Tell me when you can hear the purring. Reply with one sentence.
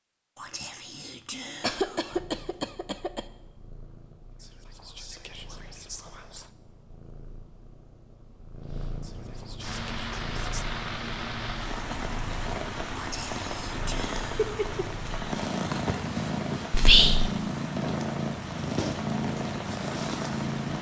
You can hear the purring from 2.1 to 20.7 s.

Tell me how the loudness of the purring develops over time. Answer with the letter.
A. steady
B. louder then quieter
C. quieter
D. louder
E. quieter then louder
D.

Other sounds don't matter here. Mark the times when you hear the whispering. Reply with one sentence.
The whispering can be heard from 0.3 to 2.4 s, from 4.4 to 6.5 s, from 9.0 to 10.7 s, from 12.9 to 14.6 s and from 16.7 to 17.3 s.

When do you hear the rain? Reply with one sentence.
The rain can be heard from 9.6 to 20.7 s.